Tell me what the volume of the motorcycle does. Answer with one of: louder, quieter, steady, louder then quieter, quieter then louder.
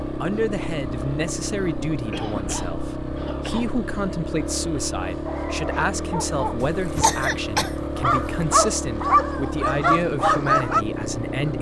steady.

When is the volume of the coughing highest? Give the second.
7 s.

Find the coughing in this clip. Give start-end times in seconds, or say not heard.
2.1-3.8, 6.6-8.4.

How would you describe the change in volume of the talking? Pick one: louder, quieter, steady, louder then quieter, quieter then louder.
steady.